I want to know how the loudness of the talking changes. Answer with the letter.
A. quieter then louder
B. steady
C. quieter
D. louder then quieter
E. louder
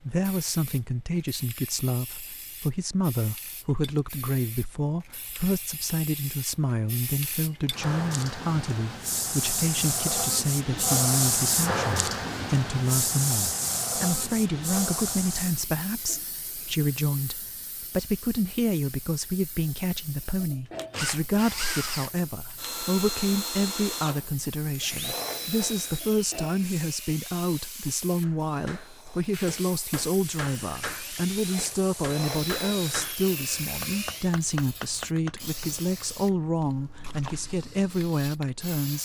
B.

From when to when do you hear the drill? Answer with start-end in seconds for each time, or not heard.
20.6-34.3.